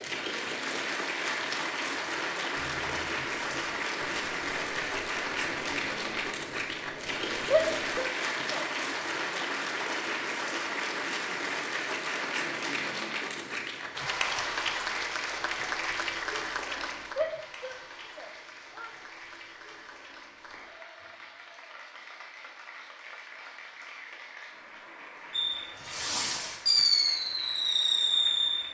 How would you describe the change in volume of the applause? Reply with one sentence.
The loudness of the applause goes down.